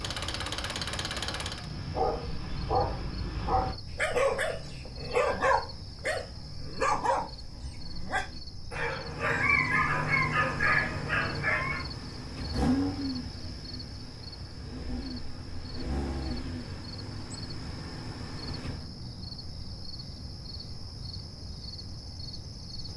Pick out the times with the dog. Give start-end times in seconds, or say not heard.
1.4-11.8.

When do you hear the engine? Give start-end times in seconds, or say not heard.
0.0-1.7, 9.1-18.9.